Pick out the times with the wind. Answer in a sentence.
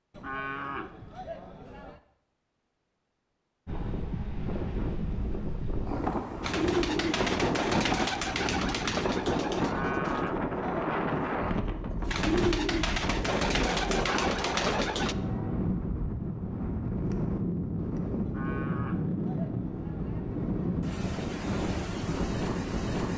The wind can be heard from 3.6 to 23.1 s.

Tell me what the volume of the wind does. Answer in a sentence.
The loudness of the wind stays about the same.